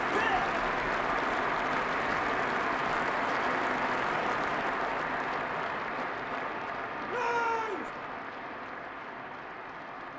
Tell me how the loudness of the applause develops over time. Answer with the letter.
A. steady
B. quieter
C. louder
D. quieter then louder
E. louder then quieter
B.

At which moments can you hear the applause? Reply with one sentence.
The applause can be heard from 0.0 to 10.1 s.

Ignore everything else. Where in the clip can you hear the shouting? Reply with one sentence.
You can hear the shouting from 0.1 to 0.5 s and from 7.0 to 7.9 s.